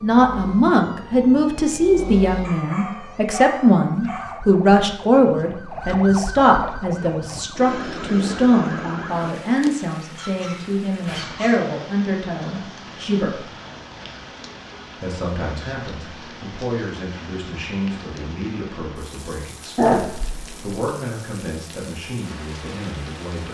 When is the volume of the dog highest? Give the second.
20 s.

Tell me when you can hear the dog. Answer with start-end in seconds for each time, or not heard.
2.4-4.4, 10.2-11.7, 19.8-20.8.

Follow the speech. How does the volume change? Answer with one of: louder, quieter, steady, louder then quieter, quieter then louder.
quieter.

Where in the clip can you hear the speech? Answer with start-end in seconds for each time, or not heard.
0.0-13.4, 15.0-23.4.